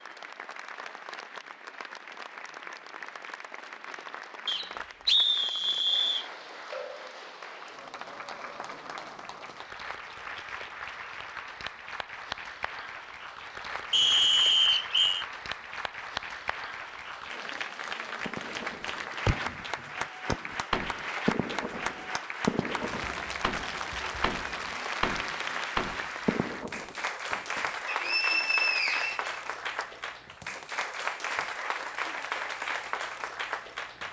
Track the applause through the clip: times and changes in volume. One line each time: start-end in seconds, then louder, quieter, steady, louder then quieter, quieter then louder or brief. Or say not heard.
0.0-34.0 louder.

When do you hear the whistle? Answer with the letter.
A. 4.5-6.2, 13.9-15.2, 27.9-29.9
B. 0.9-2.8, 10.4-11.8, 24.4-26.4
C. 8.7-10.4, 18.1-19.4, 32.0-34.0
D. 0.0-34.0
A.